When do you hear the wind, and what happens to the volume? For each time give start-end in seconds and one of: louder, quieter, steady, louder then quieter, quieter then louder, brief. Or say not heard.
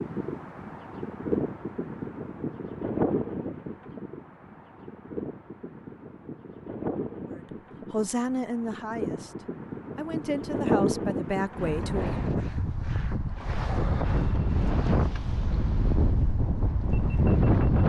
0.0-17.8 quieter then louder.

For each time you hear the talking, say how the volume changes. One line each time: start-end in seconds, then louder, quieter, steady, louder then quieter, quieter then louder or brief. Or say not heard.
7.3-12.1 quieter then louder.